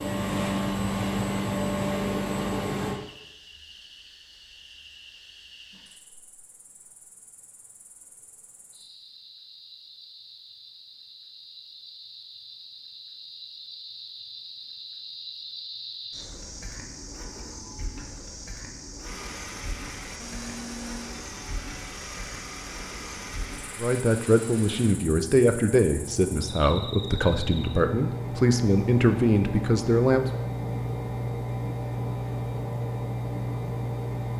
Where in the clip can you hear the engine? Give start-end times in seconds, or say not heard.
0.0-3.0, 19.0-34.3.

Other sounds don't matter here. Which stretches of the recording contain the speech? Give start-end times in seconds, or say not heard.
23.8-30.2.